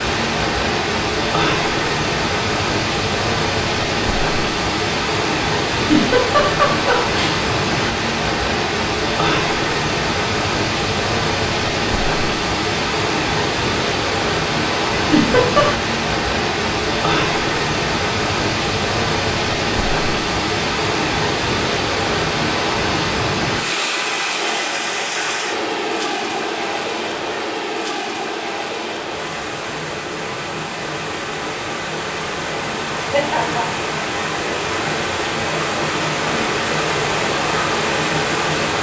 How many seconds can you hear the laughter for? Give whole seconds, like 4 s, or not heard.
3 s.